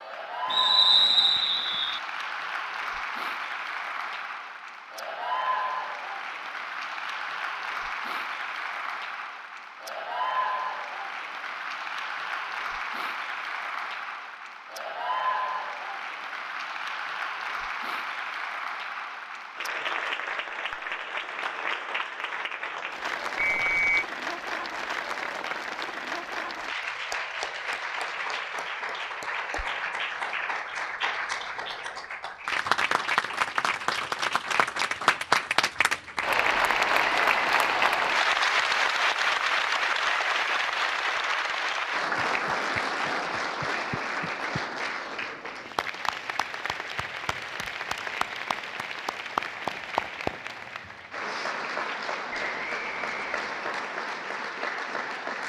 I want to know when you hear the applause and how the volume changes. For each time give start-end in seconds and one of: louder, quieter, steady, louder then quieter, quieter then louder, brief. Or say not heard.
0.0-55.4 louder then quieter.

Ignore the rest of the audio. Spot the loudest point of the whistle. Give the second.
1 s.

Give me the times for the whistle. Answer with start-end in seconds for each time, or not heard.
0.5-2.0, 23.4-24.1, 52.3-53.9.